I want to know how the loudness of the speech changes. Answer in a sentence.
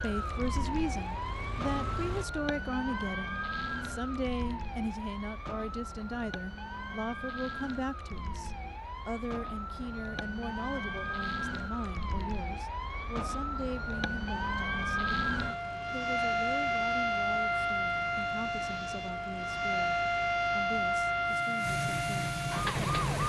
The loudness of the speech goes down.